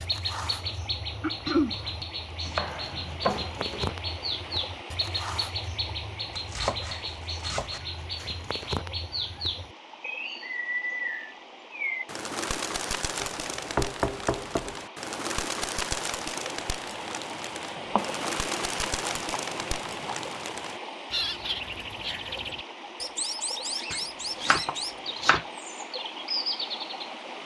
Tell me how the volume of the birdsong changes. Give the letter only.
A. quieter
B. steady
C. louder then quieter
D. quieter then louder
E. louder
B.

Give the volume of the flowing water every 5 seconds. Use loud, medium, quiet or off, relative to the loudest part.
medium, medium, medium, loud, loud, loud.